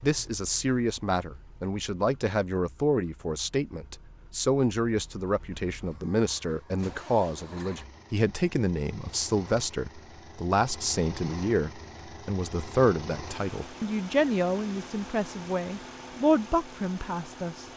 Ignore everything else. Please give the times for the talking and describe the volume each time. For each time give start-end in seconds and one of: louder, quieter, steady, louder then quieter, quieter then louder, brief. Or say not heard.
0.0-17.6 steady.